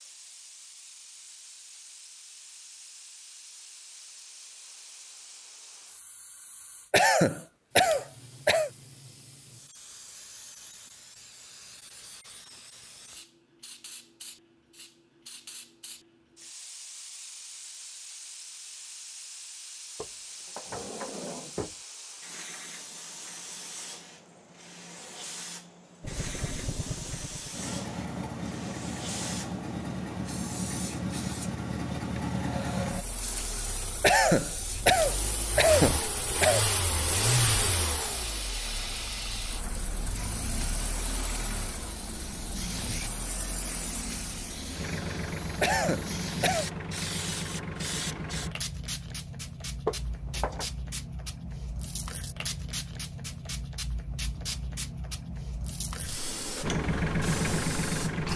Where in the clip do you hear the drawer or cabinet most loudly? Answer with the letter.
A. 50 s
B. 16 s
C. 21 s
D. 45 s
A.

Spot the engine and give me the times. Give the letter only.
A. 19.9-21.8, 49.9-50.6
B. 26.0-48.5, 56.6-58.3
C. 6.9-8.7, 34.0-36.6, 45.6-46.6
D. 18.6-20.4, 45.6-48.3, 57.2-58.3
B.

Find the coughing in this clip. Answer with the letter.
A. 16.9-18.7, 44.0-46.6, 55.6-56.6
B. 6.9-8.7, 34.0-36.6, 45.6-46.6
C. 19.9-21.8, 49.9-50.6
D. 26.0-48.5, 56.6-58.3
B.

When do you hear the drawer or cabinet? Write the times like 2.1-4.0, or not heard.
19.9-21.8, 49.9-50.6.